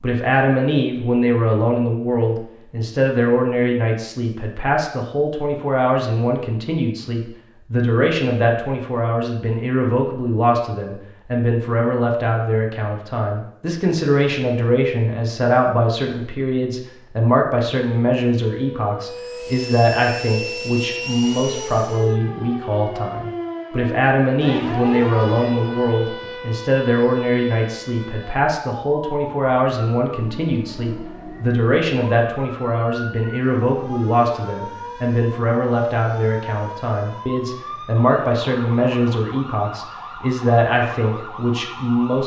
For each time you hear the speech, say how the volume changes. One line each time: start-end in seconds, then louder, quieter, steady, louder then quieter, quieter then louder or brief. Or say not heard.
0.0-42.2 steady.